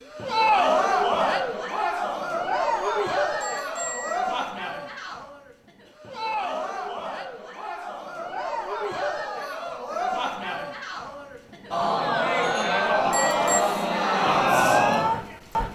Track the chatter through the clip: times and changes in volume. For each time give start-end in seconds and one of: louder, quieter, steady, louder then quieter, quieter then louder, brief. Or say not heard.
0.1-15.7 quieter then louder.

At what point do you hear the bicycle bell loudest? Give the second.
13 s.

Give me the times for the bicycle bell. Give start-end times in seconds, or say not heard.
2.7-4.2, 12.4-13.6.